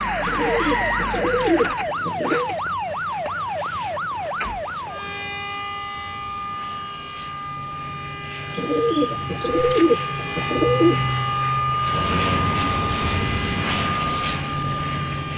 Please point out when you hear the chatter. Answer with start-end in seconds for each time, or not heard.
not heard.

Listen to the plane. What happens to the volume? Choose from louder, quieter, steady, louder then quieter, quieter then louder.
louder.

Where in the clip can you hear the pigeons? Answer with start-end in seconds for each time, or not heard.
0.2-2.5, 8.6-11.0.